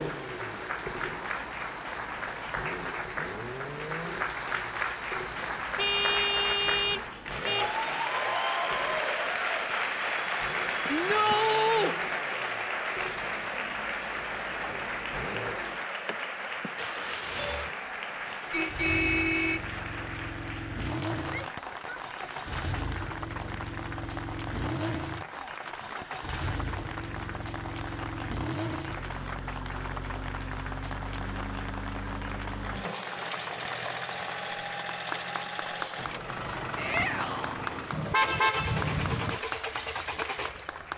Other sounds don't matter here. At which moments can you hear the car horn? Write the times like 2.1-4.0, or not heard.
5.8-7.7, 18.5-19.6, 37.9-39.4.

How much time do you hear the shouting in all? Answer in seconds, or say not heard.
3 s.